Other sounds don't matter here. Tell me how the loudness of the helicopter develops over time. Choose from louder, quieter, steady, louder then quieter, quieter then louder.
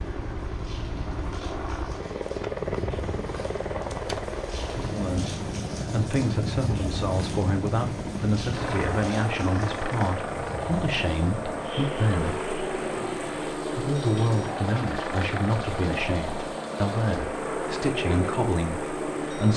steady.